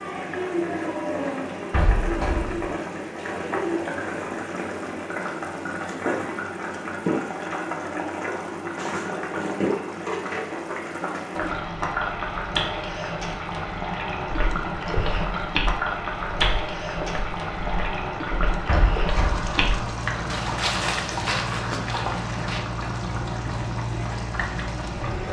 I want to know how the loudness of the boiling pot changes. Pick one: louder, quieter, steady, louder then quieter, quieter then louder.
steady.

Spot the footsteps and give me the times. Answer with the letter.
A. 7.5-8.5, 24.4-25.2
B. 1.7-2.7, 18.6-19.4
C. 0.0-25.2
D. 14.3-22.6
D.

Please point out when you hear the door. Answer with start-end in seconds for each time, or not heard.
1.7-2.7, 18.6-19.4.